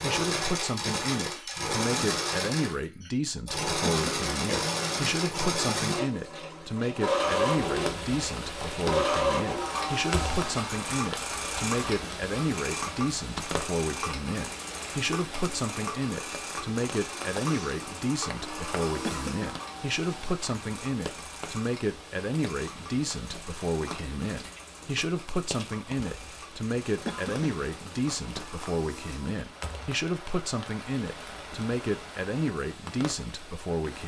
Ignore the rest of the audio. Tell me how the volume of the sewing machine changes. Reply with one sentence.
The volume of the sewing machine goes down.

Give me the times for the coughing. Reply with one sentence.
The coughing can be heard from 3.9 to 4.3 s, from 19.0 to 19.6 s and from 27.1 to 27.6 s.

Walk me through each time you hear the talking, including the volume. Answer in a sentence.
The talking can be heard from 0.0 to 34.0 s, at a steady volume.